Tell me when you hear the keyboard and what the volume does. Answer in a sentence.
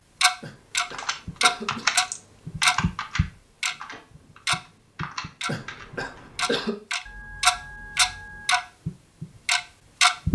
You can hear the keyboard from 0.9 to 6.2 s, getting quieter then louder.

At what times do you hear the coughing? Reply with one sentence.
The coughing can be heard from 0.4 to 2.1 s and from 5.5 to 6.8 s.